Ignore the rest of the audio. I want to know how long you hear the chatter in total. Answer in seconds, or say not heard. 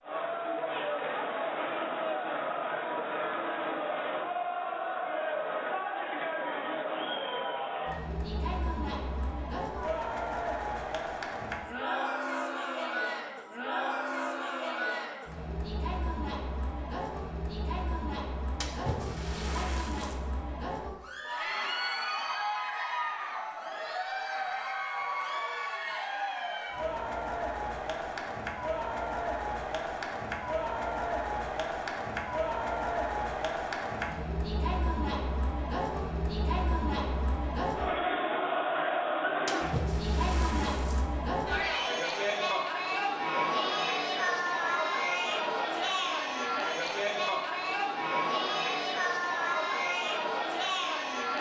51 s.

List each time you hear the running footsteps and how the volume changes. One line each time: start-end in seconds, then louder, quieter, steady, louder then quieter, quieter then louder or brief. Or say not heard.
not heard.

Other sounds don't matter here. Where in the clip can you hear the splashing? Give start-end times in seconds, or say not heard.
18.6-20.1, 39.5-41.0.